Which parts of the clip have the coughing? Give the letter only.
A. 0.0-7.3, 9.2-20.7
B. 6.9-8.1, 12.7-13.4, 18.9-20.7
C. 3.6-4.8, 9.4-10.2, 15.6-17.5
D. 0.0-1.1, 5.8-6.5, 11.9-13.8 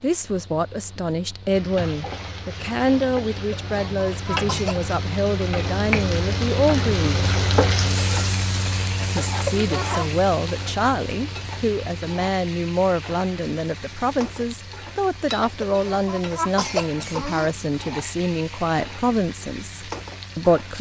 C.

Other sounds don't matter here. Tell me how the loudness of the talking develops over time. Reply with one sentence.
The loudness of the talking stays about the same.